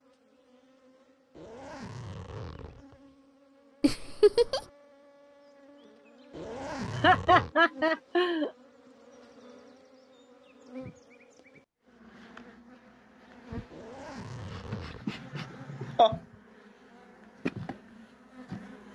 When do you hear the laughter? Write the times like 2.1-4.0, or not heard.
3.8-4.6, 7.0-8.5, 15.1-16.1.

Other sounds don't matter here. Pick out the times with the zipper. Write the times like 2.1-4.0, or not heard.
1.4-3.0, 6.3-7.5, 13.7-15.1.